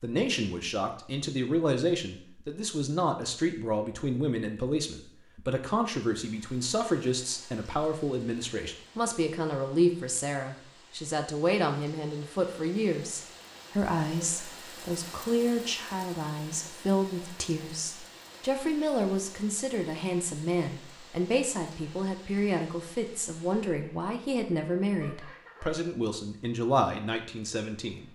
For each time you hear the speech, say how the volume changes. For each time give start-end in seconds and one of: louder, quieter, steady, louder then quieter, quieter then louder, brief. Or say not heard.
0.0-28.1 steady.